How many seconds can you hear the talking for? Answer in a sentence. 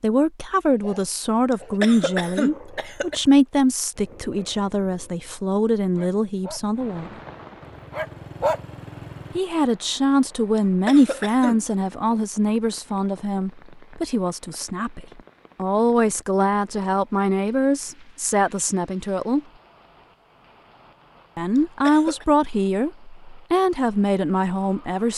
The talking can be heard for 21 seconds in total.